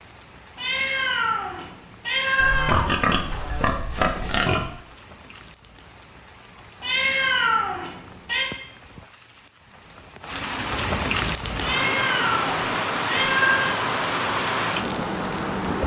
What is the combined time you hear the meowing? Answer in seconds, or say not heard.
6 s.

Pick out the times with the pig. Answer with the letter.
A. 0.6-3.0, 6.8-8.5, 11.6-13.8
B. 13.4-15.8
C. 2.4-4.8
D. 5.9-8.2
C.